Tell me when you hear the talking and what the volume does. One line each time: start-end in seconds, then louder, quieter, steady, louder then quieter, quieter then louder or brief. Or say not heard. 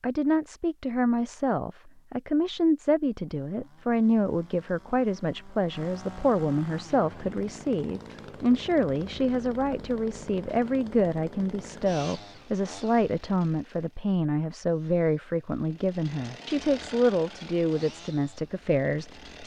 0.0-19.4 steady.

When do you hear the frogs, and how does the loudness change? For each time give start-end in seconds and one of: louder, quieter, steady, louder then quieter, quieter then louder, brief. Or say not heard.
not heard.